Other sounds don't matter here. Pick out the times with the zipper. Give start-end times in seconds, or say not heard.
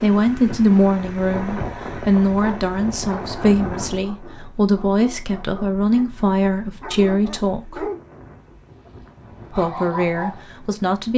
not heard.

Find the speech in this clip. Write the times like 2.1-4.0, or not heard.
0.0-7.8, 9.6-11.1.